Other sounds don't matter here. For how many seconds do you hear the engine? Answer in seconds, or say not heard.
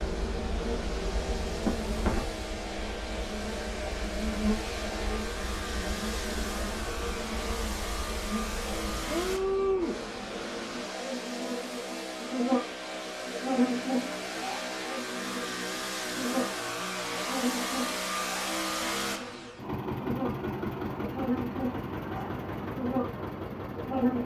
24 s.